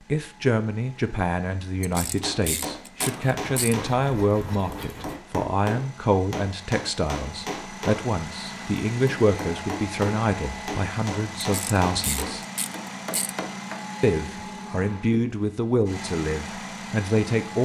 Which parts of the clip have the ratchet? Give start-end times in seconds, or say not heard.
1.8-3.8, 11.4-13.3.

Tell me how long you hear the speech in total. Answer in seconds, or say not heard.
16 s.